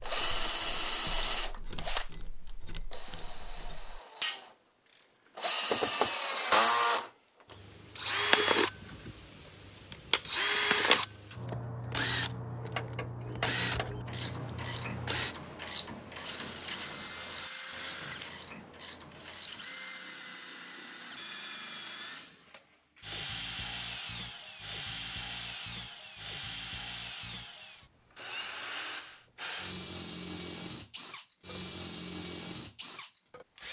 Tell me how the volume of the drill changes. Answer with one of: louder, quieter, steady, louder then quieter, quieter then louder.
quieter.